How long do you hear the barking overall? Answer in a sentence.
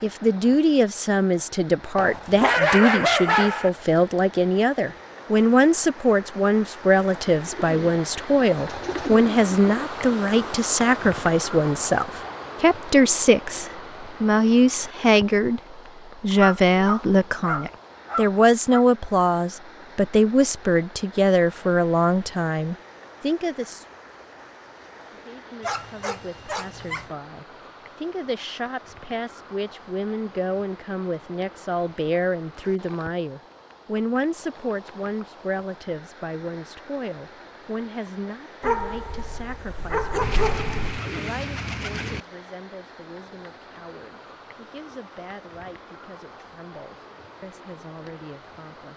You can hear the barking for 8 seconds altogether.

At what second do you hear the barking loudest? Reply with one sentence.
The loudest moment of the barking is at 3 seconds.